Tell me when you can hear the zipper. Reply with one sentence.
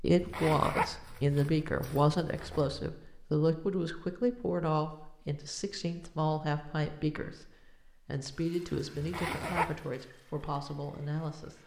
The zipper can be heard from 0.1 to 2.9 s and from 8.9 to 9.8 s.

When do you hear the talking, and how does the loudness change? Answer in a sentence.
You can hear the talking from 0.0 to 11.6 s, getting quieter.